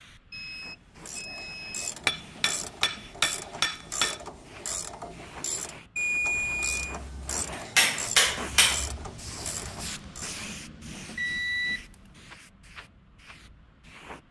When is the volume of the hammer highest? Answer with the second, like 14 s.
8 s.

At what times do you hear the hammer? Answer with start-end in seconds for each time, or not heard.
2.0-4.2, 7.5-8.9.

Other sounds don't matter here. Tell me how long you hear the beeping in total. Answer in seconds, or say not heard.
4 s.